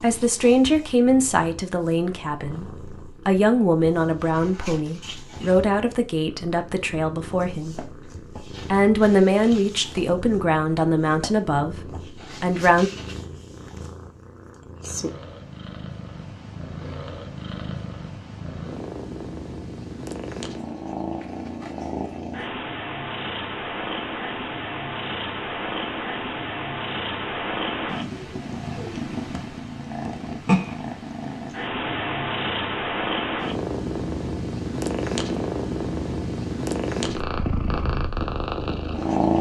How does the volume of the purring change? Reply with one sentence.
The volume of the purring goes up.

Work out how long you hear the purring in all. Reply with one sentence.
The purring can be heard for 39 seconds in total.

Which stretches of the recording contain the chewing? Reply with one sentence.
You can't hear the chewing here.